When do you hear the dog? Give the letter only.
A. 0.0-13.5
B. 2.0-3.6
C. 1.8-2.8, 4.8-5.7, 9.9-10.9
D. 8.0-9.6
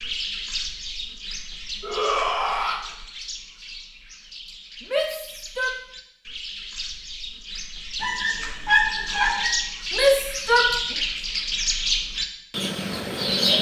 D.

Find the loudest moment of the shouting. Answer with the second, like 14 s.
10 s.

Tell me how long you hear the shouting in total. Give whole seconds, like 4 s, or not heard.
3 s.